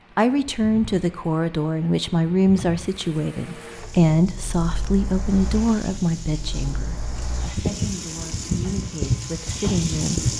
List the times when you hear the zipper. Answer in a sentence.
The zipper can't be heard in this clip.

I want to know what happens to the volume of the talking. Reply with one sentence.
The volume of the talking goes down.